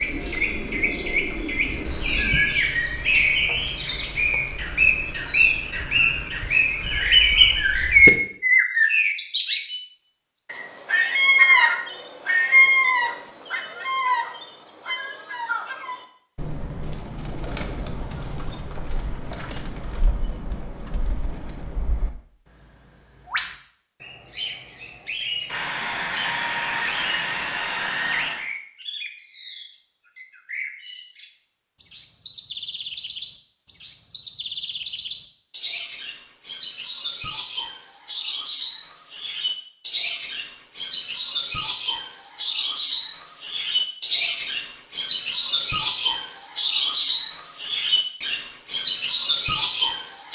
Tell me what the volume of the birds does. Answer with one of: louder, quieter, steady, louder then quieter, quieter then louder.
quieter then louder.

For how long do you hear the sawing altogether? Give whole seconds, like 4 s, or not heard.
3 s.